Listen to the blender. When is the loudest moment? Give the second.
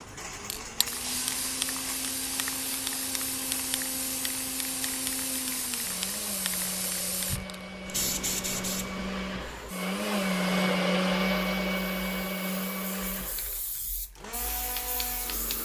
11 s.